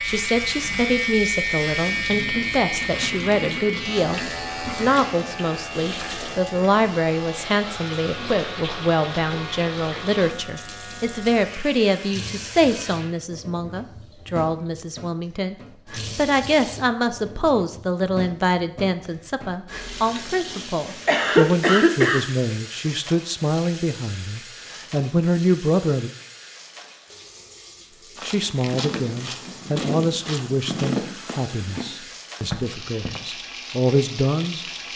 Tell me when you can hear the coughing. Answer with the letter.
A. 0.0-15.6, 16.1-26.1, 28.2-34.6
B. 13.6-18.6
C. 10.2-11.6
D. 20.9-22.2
D.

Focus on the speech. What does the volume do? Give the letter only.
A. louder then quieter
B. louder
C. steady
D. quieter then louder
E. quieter
C.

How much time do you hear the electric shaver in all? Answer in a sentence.
The electric shaver can be heard for 13 seconds in total.